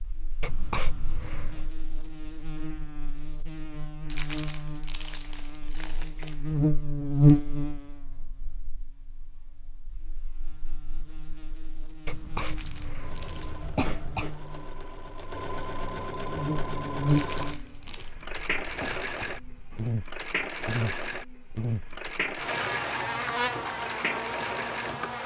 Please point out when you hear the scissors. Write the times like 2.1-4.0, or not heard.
not heard.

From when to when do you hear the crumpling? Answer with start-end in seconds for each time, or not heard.
4.1-6.3, 12.3-13.6, 17.1-18.1.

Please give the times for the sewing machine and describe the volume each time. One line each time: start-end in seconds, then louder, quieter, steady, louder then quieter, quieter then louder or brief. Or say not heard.
12.9-25.1 louder.